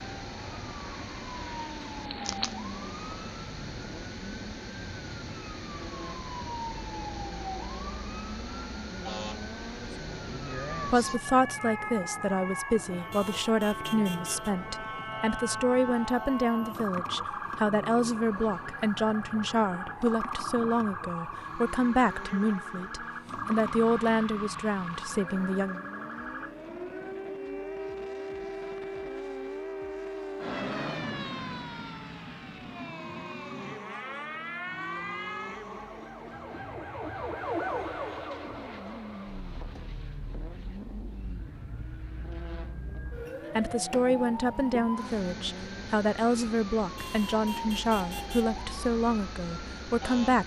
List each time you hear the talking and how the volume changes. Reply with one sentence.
You can hear the talking from 10.8 to 25.8 s, at a steady volume; and from 43.5 to 50.4 s, at a steady volume.